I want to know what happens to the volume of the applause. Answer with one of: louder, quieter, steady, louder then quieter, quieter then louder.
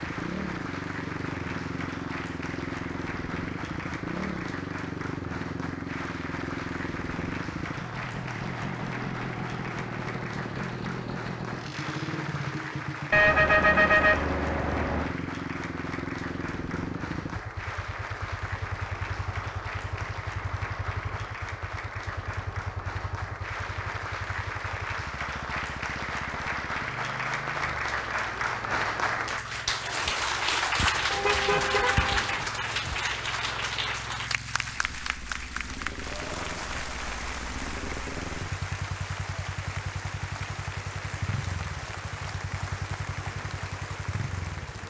louder then quieter.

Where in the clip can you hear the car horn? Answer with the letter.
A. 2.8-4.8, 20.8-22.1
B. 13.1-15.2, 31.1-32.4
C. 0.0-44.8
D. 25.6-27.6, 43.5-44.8
B.